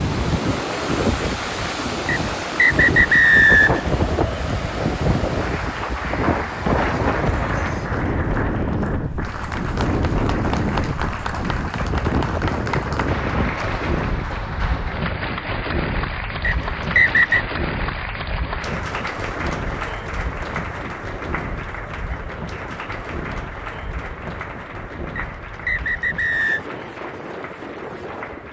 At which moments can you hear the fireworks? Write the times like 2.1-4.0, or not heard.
not heard.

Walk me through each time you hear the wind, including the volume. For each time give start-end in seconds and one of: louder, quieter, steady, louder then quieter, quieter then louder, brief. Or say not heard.
0.0-28.4 quieter.